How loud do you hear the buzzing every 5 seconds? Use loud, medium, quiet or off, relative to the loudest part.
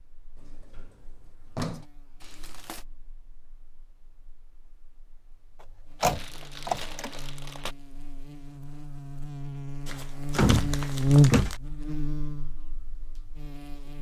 quiet, quiet, loud.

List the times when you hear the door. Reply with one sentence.
You can hear the door from 0.4 to 1.9 s, from 6.0 to 7.1 s and from 10.3 to 11.6 s.